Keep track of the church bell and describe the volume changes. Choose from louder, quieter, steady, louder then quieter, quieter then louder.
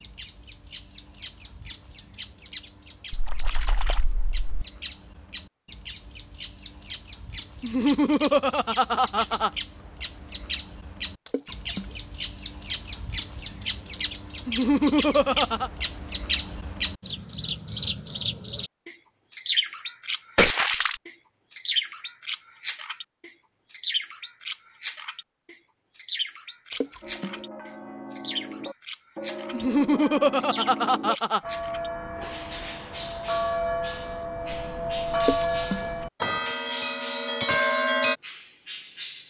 louder.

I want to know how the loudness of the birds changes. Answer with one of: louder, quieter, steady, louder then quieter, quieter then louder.
louder then quieter.